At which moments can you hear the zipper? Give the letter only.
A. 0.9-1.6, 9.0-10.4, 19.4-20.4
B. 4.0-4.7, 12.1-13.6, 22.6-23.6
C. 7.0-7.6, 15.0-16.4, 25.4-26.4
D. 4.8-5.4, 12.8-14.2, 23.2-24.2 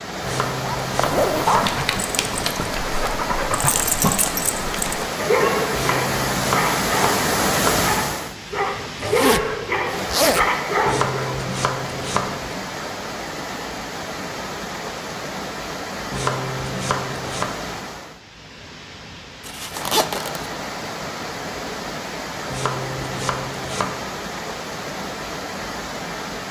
A.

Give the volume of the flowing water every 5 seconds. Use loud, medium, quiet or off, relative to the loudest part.
loud, loud, medium, medium, medium, medium.